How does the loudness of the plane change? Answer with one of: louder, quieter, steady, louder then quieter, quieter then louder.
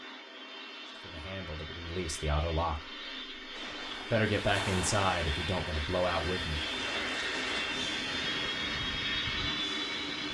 louder.